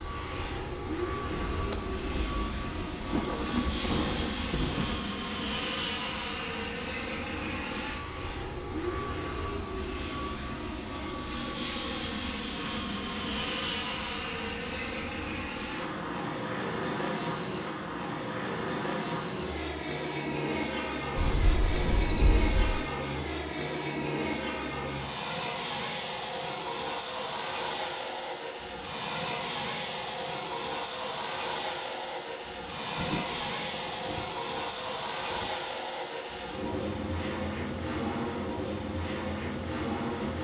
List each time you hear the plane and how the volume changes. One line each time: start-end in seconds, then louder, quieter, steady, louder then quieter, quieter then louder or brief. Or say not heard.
0.0-40.3 steady.